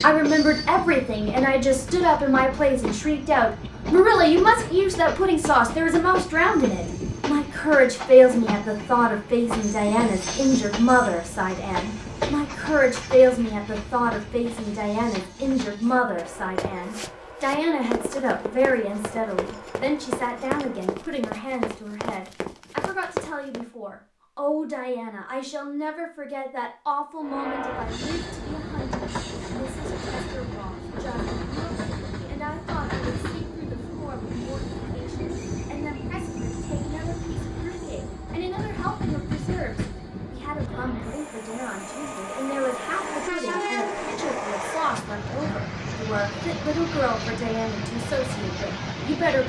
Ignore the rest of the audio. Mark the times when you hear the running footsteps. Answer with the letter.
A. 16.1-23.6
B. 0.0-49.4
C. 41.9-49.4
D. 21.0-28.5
A.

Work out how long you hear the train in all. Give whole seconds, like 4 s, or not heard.
43 s.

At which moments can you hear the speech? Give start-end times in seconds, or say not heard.
0.0-49.4.